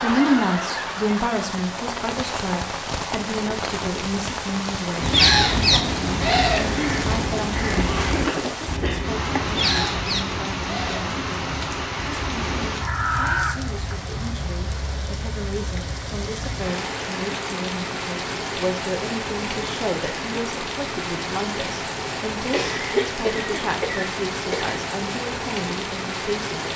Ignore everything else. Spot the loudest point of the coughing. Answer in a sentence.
The loudest moment of the coughing is at 23 seconds.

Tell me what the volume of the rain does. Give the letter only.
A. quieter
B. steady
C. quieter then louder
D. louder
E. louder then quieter
B.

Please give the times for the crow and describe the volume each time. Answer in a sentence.
The crow can be heard from 5.0 to 13.9 s, getting quieter then louder.